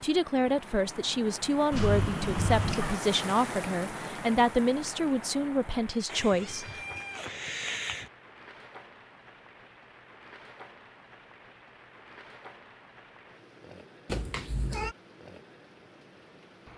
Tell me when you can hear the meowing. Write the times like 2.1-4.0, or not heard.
1.7-3.0, 6.0-8.1, 14.1-14.9.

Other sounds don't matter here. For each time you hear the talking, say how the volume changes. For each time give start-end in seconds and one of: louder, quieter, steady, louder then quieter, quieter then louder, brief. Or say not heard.
0.0-6.8 steady.